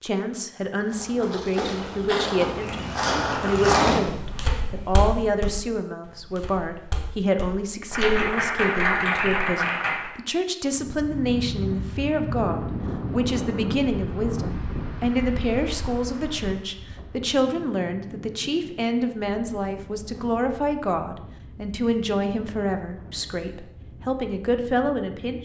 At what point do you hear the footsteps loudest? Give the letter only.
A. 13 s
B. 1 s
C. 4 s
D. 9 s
C.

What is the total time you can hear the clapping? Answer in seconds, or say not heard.
2 s.